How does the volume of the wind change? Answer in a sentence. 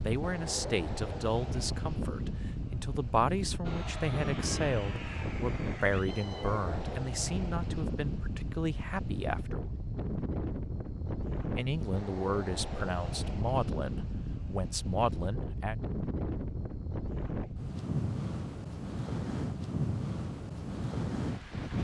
The volume of the wind stays about the same.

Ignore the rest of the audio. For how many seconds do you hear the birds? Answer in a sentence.
You can't hear the birds here.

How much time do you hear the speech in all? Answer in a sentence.
You can hear the speech for 14 seconds altogether.